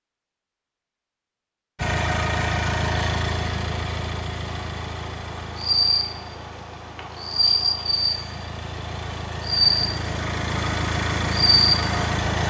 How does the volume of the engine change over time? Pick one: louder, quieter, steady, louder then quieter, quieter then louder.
quieter then louder.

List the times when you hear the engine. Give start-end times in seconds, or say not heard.
1.8-12.4.